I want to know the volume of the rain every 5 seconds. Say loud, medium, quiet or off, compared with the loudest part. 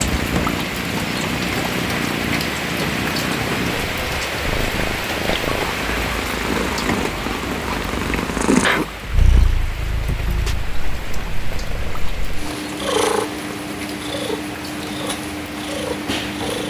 loud, loud, medium, medium.